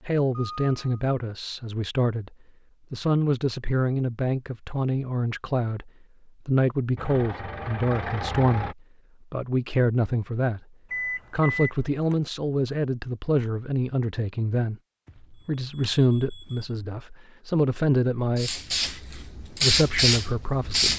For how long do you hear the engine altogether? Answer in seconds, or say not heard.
2 s.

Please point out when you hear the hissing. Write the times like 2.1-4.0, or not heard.
18.4-20.9.